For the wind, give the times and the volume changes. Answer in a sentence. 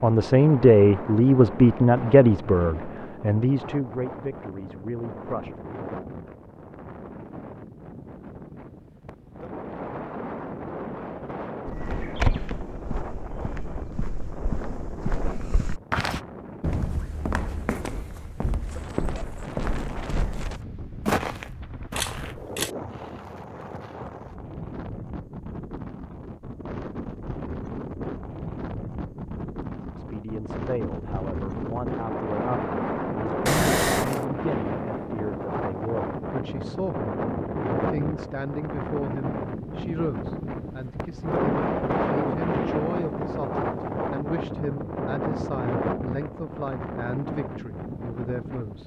You can hear the wind from 0.0 to 48.8 s, getting louder.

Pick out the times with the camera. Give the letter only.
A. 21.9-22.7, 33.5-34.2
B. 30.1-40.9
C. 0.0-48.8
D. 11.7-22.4
A.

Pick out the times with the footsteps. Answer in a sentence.
The footsteps can be heard from 11.7 to 22.4 s.